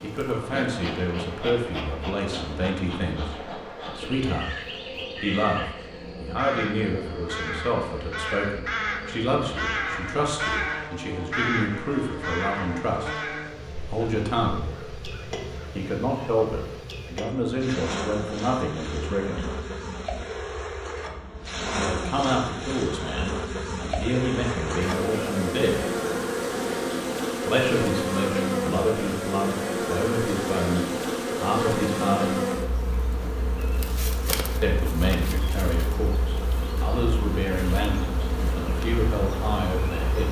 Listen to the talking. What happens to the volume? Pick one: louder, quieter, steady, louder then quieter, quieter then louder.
steady.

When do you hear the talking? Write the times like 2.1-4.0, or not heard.
0.0-14.7, 15.8-19.6, 21.8-25.9, 27.4-32.4, 34.6-40.2.